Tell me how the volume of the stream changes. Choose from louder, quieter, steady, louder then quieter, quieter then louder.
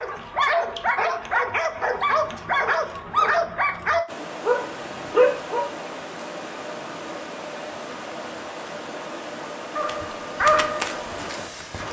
steady.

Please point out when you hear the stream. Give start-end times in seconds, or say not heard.
4.0-11.8.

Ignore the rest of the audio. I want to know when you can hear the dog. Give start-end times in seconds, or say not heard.
0.0-5.7, 9.8-11.8.